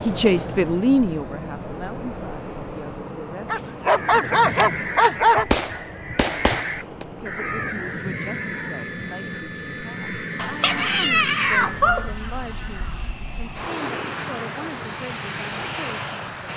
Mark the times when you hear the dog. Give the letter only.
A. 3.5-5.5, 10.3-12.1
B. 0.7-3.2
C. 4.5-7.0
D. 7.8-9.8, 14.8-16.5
A.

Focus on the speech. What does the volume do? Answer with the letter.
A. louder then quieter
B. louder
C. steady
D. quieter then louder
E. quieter
E.